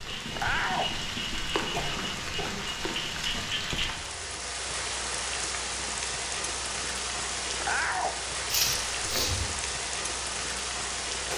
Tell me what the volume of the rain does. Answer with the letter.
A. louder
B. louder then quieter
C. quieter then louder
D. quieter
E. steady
E.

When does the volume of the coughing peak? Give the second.
9 s.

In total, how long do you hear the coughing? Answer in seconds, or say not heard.
2 s.